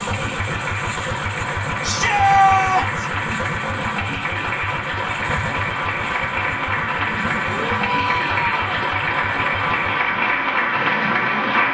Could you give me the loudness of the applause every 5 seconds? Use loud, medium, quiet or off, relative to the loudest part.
medium, loud, loud.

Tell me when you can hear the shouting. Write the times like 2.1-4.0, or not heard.
1.8-3.0, 7.7-8.8.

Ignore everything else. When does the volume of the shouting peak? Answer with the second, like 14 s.
2 s.